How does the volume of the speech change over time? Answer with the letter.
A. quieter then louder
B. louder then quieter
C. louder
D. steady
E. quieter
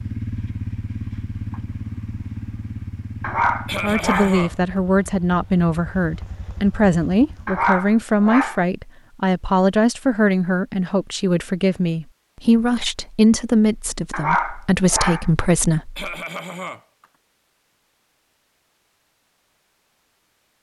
D.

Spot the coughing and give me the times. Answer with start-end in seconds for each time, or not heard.
3.6-4.8, 15.9-17.1.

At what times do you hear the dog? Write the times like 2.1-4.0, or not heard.
3.2-4.4, 7.5-8.7, 14.1-15.3.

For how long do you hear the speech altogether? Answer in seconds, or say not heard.
12 s.